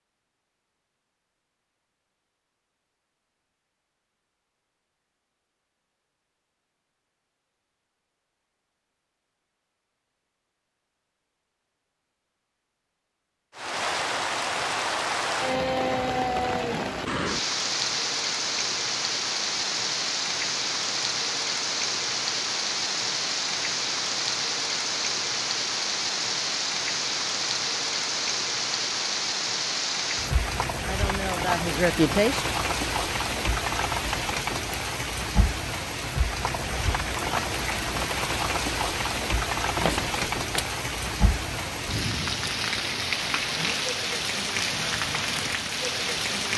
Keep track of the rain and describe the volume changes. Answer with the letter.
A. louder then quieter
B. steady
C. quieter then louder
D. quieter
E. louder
B.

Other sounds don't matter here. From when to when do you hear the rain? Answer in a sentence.
The rain can be heard from 13.6 to 46.5 s.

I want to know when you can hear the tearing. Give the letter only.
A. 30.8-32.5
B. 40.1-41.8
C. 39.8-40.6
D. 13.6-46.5
C.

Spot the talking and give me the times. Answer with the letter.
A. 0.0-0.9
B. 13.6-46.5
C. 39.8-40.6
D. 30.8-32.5
D.